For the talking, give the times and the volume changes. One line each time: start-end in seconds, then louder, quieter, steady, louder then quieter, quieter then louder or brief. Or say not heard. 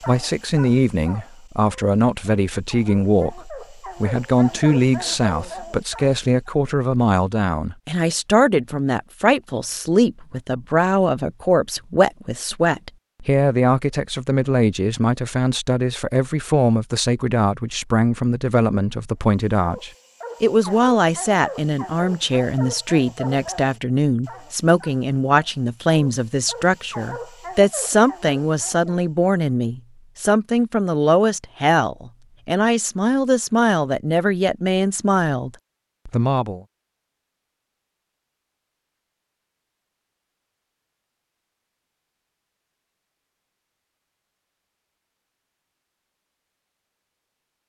0.1-36.6 steady.